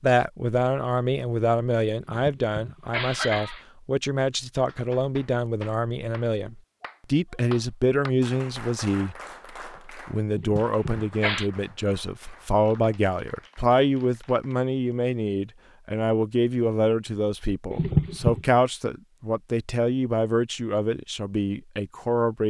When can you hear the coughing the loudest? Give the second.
18 s.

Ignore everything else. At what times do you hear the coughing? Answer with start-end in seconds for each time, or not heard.
2.0-3.6, 10.2-11.5, 17.7-18.4.